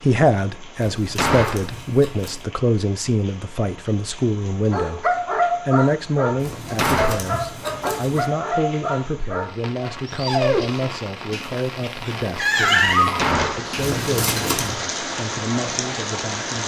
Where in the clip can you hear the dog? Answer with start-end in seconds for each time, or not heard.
4.7-14.0.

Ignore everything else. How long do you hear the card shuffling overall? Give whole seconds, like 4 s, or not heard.
5 s.